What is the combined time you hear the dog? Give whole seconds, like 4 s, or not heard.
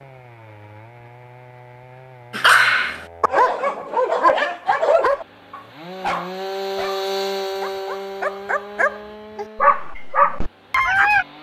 9 s.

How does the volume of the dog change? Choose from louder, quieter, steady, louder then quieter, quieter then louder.
quieter then louder.